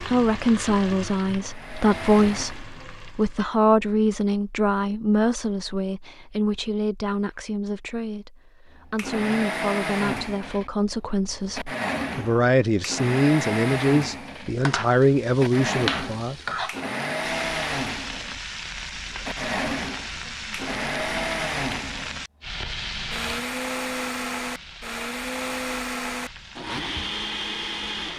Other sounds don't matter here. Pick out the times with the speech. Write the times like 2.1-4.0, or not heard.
0.0-16.4.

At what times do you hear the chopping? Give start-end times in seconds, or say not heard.
not heard.